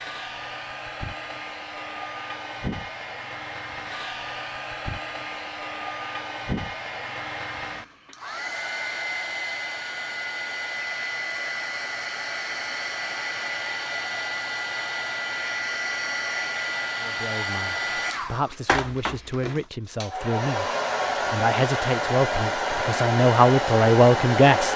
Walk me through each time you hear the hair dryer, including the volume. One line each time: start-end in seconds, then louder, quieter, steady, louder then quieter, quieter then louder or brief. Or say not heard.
0.0-24.7 louder.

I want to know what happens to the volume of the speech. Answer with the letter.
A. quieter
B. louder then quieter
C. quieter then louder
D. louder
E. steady
D.